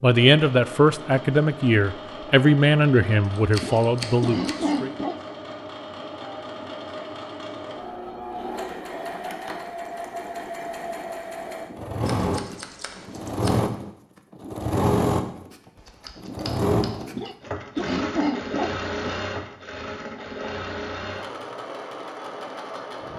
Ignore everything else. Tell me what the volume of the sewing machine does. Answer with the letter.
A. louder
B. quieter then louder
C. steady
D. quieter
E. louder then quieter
E.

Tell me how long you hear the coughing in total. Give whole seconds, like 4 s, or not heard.
4 s.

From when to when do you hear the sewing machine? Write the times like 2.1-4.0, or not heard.
0.0-23.1.